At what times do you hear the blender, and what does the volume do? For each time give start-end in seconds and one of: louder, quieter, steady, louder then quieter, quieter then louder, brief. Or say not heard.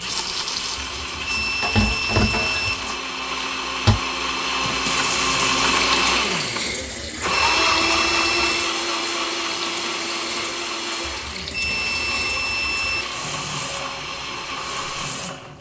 0.0-15.5 louder then quieter.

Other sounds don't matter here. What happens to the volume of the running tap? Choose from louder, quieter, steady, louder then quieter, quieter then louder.
quieter.